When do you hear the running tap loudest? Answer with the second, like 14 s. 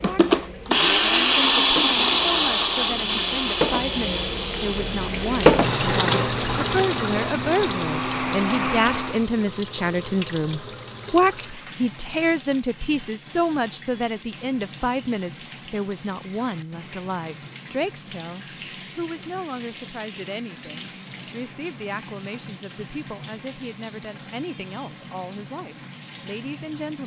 6 s.